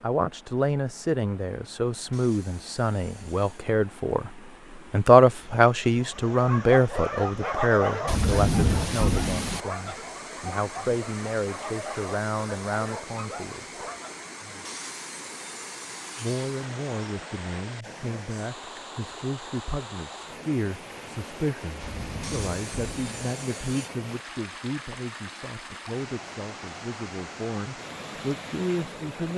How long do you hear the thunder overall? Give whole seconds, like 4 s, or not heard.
3 s.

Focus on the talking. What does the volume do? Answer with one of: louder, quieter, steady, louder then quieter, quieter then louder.
quieter.